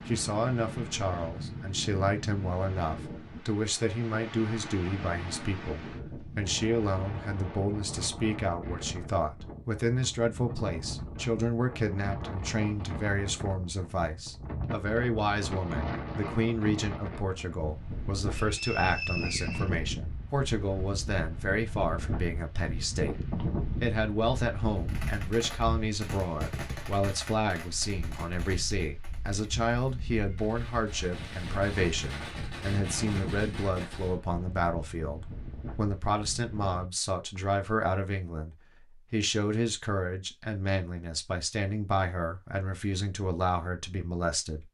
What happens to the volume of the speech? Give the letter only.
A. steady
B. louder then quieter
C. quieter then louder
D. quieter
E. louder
A.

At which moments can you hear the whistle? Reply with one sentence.
You can hear the whistle from 18.4 to 19.9 s.